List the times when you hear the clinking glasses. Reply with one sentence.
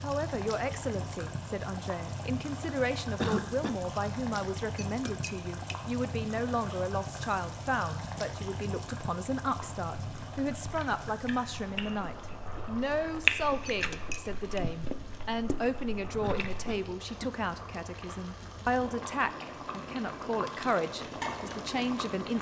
You can hear the clinking glasses from 4.8 to 5.8 s and from 13.7 to 14.6 s.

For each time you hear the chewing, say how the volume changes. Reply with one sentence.
The chewing can be heard from 9.4 to 16.8 s, getting louder then quieter.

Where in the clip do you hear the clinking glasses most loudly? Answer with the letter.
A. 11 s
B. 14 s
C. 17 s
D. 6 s
B.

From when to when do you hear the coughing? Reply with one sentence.
You can hear the coughing from 3.1 to 3.8 s and from 16.2 to 17.4 s.